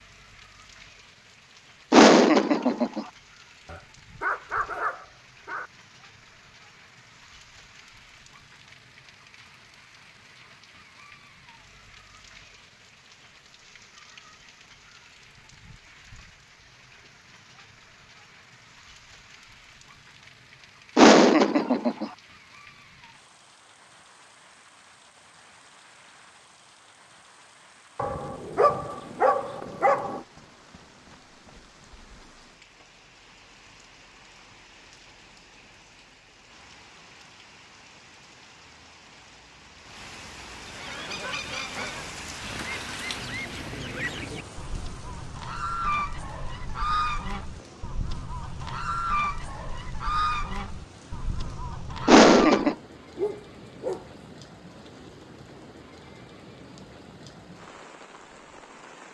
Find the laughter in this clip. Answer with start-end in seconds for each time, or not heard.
1.9-3.0, 20.9-22.1, 52.0-52.8.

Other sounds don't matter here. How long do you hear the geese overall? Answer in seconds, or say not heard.
12 s.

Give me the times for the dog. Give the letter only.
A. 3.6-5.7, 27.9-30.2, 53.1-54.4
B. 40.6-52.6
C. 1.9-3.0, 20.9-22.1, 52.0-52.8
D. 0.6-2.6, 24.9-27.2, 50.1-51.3
A.